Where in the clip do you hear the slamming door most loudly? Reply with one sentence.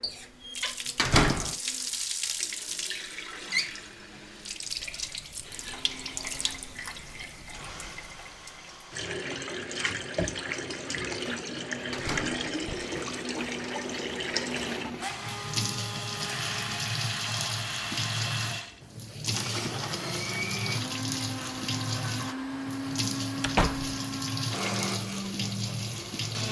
The volume of the slamming door peaks at 1 second.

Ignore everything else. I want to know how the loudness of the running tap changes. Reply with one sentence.
The volume of the running tap stays about the same.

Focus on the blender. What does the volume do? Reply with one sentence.
The volume of the blender goes up.